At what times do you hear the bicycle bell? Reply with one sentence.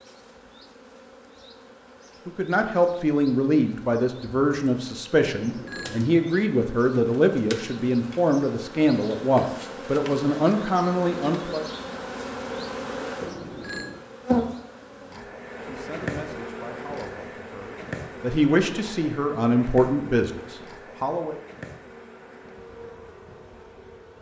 The bicycle bell can be heard from 5.2 to 6.0 s and from 13.2 to 14.1 s.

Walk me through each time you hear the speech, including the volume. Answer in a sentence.
You can hear the speech from 2.2 to 11.7 s, at a steady volume; and from 15.0 to 21.4 s, getting louder.